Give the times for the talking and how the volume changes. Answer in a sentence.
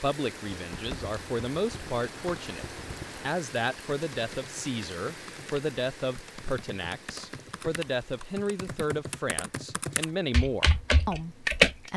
The talking can be heard from 0.0 to 11.9 s, at a steady volume.